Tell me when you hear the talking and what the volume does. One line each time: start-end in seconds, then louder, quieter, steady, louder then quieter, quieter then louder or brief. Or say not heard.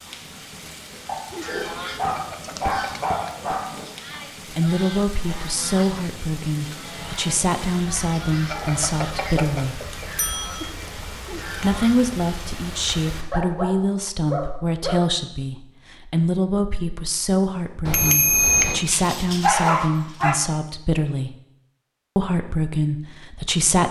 4.5-9.8 steady
11.6-21.4 steady
22.1-23.8 brief.